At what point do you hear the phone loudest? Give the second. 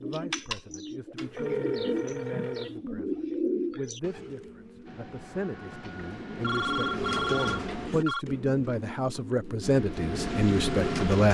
7 s.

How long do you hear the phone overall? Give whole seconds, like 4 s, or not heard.
4 s.